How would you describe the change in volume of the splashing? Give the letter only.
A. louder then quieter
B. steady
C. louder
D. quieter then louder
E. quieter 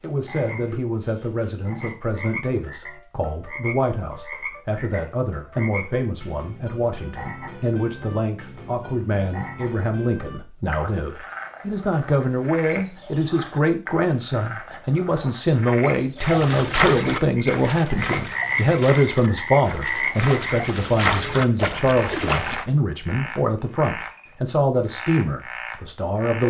D.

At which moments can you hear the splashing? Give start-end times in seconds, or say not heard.
16.2-22.6.